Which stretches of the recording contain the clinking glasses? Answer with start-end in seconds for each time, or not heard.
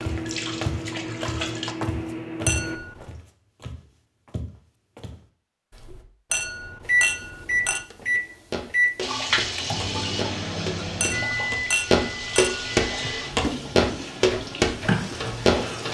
2.5-3.1, 6.3-7.8, 11.0-13.2.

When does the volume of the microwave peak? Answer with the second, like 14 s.
7 s.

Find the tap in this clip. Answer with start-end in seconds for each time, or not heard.
0.0-1.8, 9.0-15.8.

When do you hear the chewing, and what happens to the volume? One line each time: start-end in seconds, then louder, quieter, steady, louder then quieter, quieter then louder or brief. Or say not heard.
not heard.